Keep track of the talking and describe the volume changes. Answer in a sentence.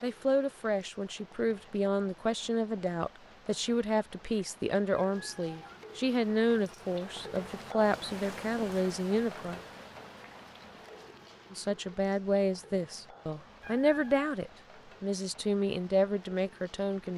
The loudness of the talking stays about the same.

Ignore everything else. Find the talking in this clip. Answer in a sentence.
You can hear the talking from 0.0 to 9.6 s and from 11.5 to 17.1 s.